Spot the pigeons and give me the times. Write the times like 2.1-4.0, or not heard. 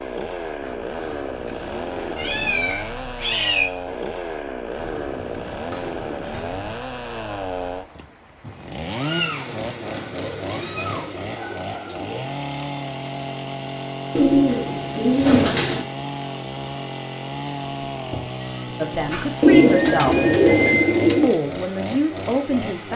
0.6-2.8, 4.7-6.8, 9.8-12.2, 14.2-15.8, 19.4-21.3.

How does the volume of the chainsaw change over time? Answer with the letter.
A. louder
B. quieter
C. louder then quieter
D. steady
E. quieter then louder
D.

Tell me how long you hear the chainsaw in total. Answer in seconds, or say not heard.
23 s.